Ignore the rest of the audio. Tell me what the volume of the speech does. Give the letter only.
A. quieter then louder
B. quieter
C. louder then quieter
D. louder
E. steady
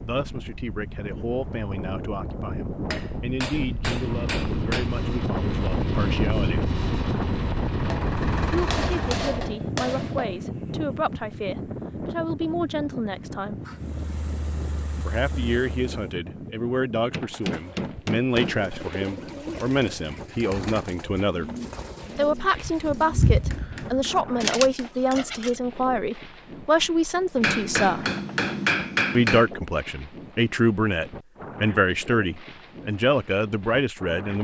D.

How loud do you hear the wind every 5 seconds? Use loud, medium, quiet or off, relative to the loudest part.
medium, loud, medium, quiet, quiet, quiet, quiet.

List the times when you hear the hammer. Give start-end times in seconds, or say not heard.
2.9-4.9, 7.8-10.3, 16.9-18.7, 23.0-25.6, 27.4-29.5.